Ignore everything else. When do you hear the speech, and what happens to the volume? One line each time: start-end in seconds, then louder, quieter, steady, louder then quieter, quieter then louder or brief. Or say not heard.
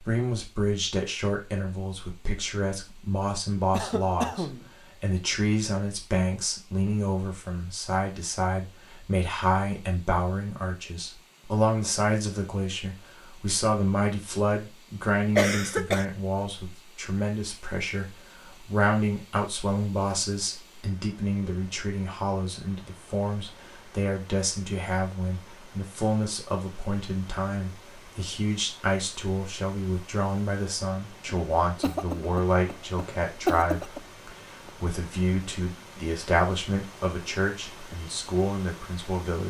0.0-39.4 steady.